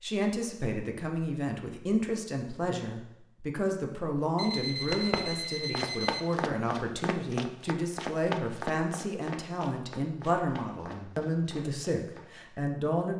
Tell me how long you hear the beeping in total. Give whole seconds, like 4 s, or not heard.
2 s.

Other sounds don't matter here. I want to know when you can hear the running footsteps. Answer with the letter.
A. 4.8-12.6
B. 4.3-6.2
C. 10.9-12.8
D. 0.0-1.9
A.